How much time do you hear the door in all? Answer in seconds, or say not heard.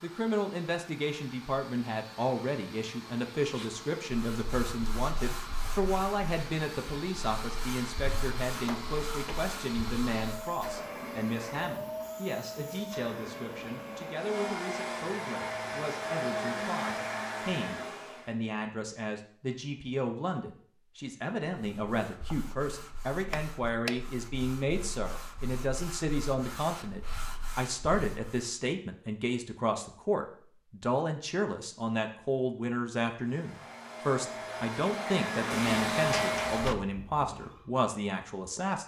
3 s.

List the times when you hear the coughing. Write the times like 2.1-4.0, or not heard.
not heard.